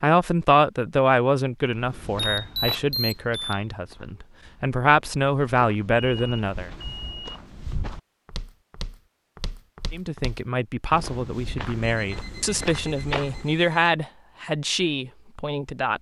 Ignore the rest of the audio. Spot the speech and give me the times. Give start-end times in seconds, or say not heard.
0.0-6.7, 9.9-15.9.